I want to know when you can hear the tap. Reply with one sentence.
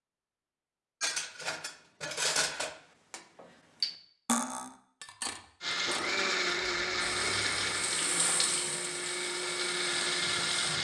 The tap can be heard from 7.2 to 10.8 s.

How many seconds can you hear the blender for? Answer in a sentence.
The blender can be heard for 5 seconds in total.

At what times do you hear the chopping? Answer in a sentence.
The chopping can't be heard in this clip.